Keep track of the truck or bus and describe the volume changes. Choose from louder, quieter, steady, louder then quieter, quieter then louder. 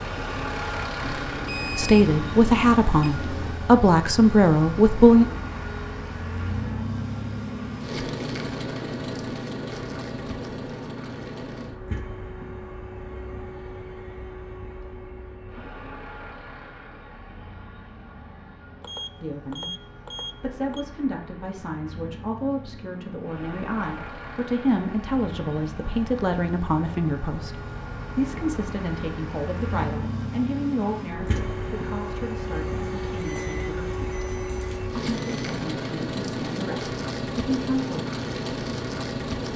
quieter then louder.